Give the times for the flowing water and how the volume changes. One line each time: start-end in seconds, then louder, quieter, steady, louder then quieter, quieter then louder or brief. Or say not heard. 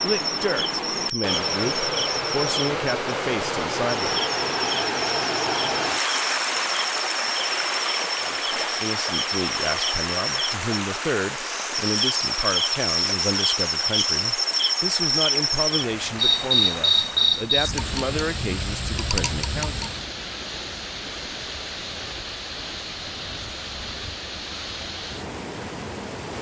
0.0-26.3 quieter.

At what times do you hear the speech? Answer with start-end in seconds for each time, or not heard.
0.0-4.2, 8.2-19.9.